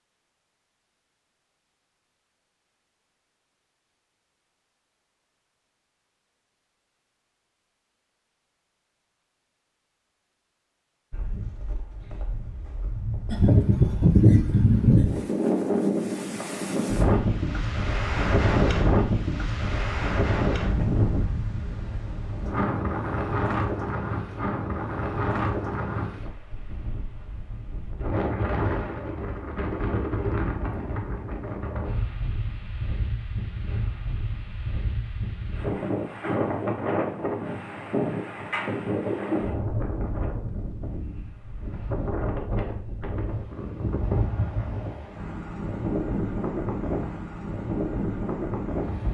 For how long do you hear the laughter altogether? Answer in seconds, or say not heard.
2 s.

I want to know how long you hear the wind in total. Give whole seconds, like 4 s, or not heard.
38 s.